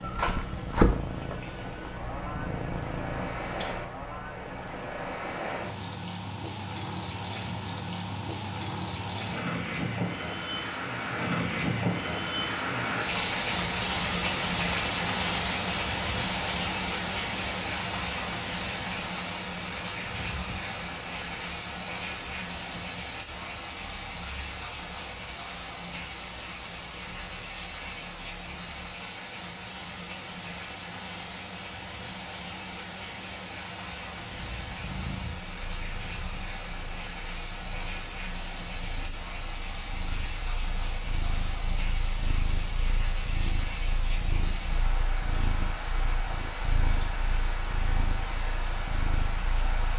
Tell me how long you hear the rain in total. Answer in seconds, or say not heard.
50 s.